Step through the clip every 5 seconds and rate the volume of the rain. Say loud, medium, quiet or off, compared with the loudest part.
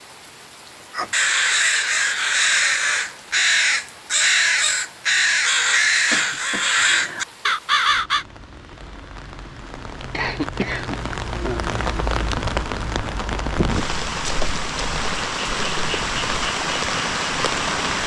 quiet, quiet, loud, loud.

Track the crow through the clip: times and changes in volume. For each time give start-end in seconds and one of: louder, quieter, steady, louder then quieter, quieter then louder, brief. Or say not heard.
0.9-8.2 steady.